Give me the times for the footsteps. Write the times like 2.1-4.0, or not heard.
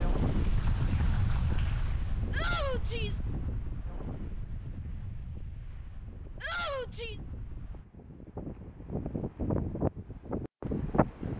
not heard.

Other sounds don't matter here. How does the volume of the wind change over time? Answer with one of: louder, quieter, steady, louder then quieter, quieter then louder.
quieter then louder.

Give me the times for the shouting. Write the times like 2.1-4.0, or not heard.
2.3-3.2, 6.4-7.2.